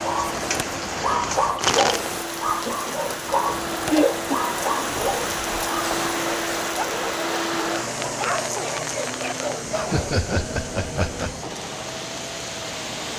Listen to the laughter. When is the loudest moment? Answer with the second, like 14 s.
4 s.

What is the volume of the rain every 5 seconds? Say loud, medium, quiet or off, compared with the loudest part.
loud, loud, medium.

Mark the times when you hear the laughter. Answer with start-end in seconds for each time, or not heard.
2.6-4.4, 9.9-11.3.